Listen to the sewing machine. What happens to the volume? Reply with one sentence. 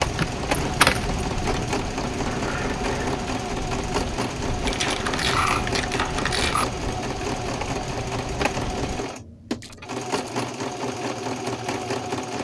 The loudness of the sewing machine stays about the same.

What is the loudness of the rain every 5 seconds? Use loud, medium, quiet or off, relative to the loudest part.
loud, loud, off.